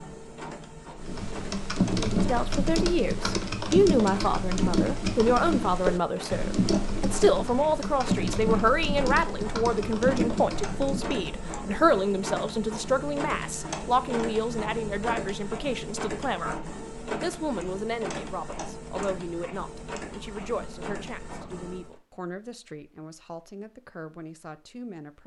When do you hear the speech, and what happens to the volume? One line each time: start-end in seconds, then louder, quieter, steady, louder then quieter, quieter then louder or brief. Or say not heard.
2.1-25.2 quieter.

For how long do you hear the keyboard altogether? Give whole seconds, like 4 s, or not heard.
10 s.